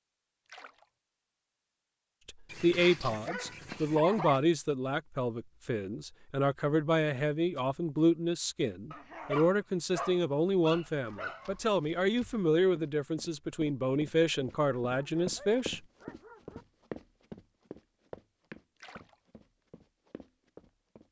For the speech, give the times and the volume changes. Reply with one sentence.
You can hear the speech from 2.2 to 15.8 s, at a steady volume.